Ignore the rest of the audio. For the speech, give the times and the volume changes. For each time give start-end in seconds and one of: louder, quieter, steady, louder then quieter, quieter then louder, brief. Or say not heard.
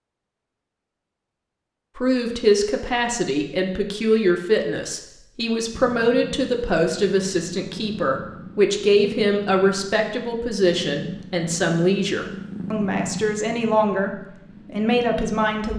1.9-15.7 steady.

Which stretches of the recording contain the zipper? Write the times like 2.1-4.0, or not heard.
not heard.